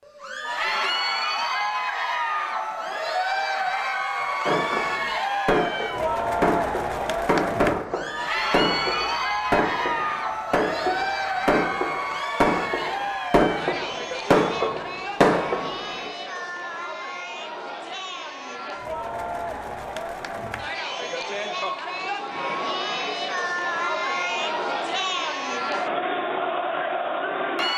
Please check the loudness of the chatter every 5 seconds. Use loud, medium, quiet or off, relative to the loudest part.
loud, loud, loud, medium, loud, loud.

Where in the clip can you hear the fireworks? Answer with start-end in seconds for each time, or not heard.
4.5-15.8.